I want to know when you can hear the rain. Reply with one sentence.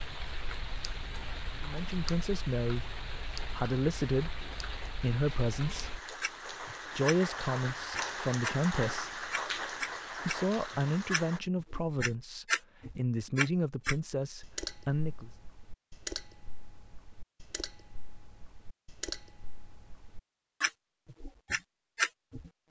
You can hear the rain from 0.0 to 11.4 s.